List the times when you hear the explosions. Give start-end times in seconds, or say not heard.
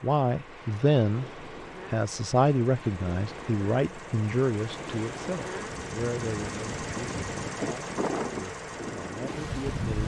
not heard.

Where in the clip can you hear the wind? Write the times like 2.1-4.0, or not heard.
0.2-10.0.